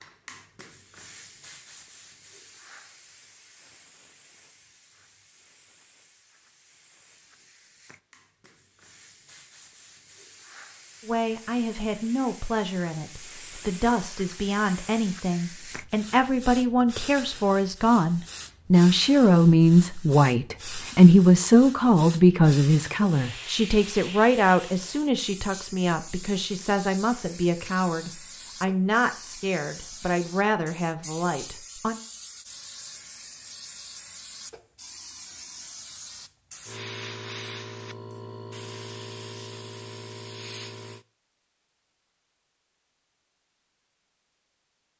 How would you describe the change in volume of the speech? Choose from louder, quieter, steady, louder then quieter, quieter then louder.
louder then quieter.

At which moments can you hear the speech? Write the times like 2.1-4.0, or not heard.
11.1-32.0.